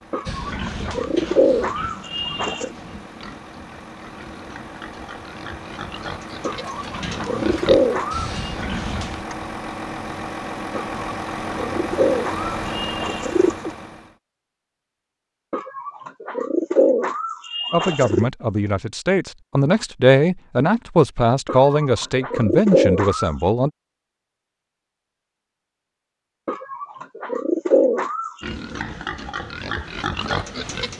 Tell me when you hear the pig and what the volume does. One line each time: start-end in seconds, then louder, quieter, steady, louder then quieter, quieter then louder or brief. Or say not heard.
0.2-9.2 quieter then louder
28.4-30.9 brief.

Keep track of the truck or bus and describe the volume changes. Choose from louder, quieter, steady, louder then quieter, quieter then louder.
louder.